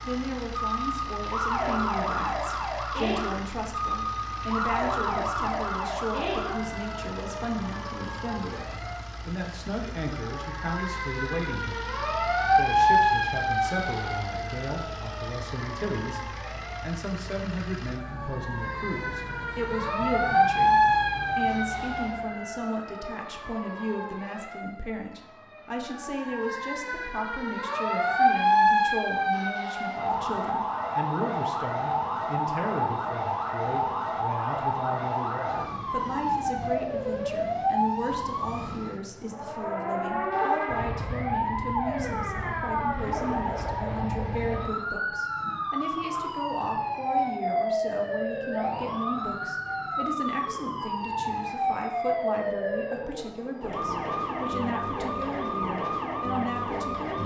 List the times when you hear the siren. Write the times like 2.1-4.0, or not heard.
0.0-57.2.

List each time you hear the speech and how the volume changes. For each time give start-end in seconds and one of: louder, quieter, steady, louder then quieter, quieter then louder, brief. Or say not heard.
0.0-57.2 steady.